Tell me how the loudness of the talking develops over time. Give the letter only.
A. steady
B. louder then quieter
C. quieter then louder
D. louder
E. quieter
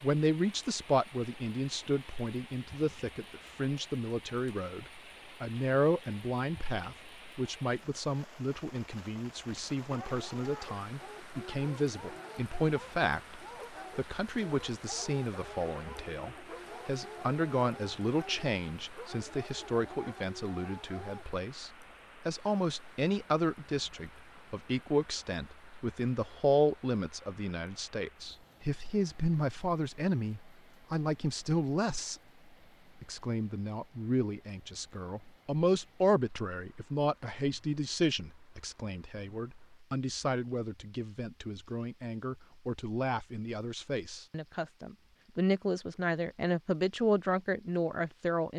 A.